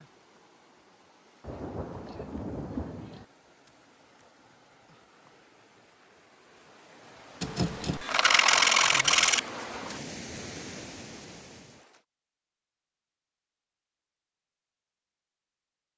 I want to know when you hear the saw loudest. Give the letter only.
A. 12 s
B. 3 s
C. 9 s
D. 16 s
C.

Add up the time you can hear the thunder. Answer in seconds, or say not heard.
2 s.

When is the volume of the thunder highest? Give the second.
3 s.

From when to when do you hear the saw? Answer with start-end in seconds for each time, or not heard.
7.4-9.4.